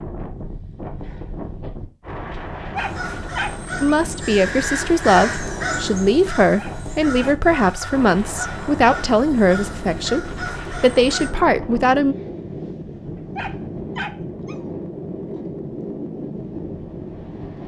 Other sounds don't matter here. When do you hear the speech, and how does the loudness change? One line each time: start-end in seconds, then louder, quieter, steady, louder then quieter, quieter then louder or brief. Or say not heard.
3.8-12.2 steady.